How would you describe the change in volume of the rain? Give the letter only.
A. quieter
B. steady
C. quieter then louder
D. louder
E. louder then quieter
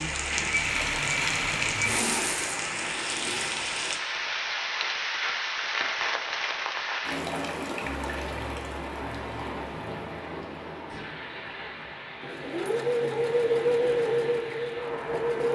A.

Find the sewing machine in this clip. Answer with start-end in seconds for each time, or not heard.
0.1-3.5, 12.2-15.5.